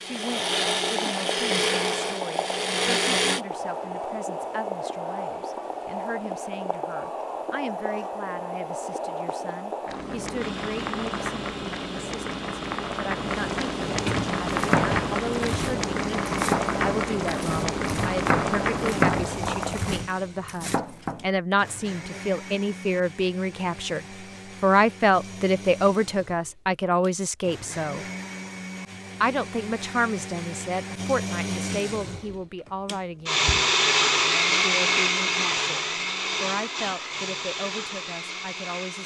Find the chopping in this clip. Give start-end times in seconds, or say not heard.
14.4-21.2.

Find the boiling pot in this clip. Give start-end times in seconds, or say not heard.
0.0-20.1.